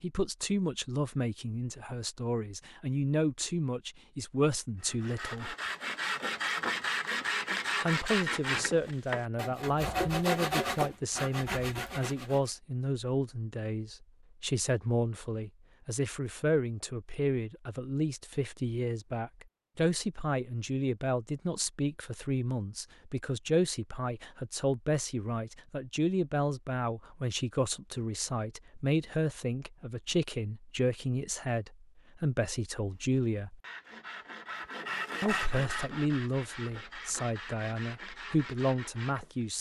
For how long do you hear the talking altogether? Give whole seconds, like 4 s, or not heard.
36 s.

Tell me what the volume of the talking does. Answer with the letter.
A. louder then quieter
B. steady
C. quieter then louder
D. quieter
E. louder
B.